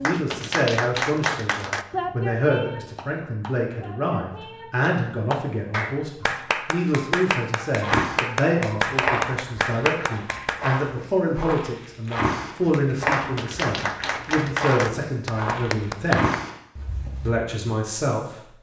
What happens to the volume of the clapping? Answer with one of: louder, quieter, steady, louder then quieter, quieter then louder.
quieter then louder.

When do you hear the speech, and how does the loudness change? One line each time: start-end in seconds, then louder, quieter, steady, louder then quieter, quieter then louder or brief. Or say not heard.
0.0-16.3 steady
17.2-18.4 brief.